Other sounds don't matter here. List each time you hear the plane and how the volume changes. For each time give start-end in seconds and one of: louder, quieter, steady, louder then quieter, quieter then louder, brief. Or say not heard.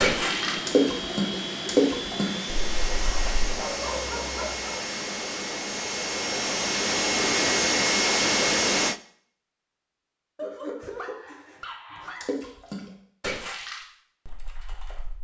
0.0-9.0 louder.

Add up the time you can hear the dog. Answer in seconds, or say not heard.
4 s.